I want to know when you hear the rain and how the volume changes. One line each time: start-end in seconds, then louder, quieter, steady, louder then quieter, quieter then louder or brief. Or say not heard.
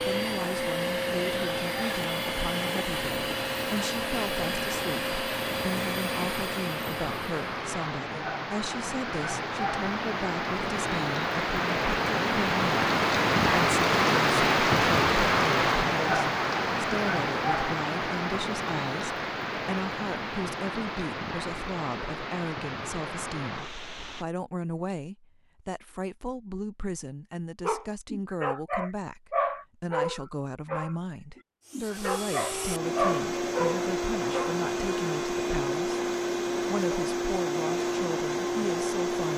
0.0-24.2 louder then quieter.